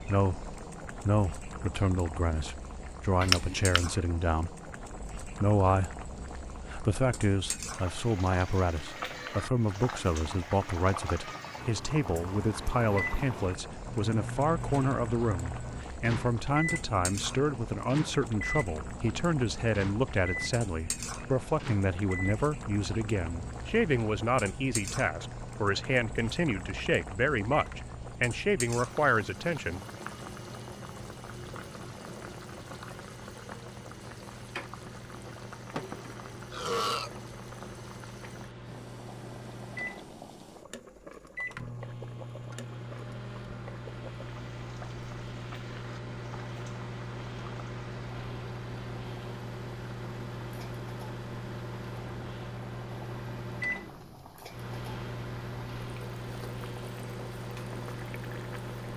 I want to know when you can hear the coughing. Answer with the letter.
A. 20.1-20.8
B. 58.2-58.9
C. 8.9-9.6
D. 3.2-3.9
D.